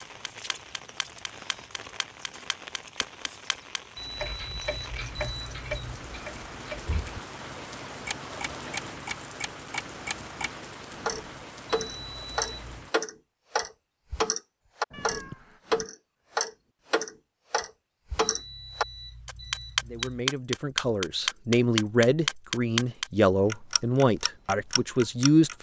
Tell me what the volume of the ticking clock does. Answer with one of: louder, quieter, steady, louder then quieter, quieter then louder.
louder.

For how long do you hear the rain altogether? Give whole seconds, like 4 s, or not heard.
13 s.